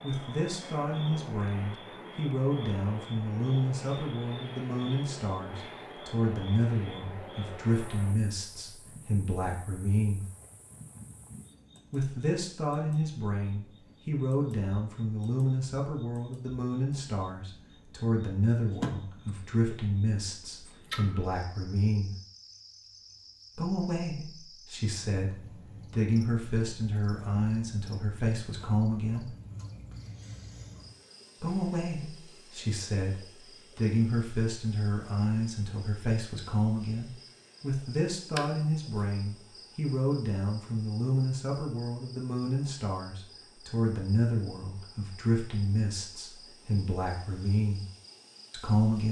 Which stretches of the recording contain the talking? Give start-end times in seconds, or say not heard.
0.0-10.2, 11.9-22.1, 23.6-29.4, 31.4-47.9, 48.5-49.0.